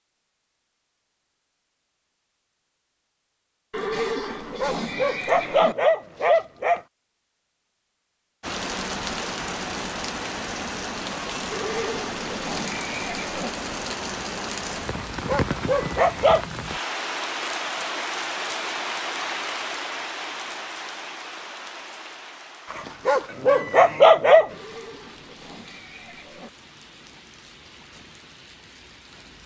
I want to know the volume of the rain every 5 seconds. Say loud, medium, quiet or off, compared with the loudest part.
off, loud, loud, loud, medium, quiet.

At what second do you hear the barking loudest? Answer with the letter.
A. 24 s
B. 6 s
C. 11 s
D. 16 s
A.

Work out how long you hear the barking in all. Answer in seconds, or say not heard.
6 s.